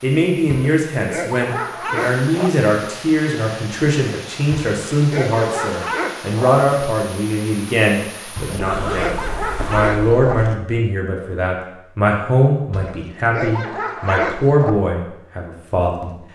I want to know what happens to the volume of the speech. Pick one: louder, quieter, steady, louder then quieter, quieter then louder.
steady.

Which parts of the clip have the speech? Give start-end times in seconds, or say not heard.
0.0-16.1.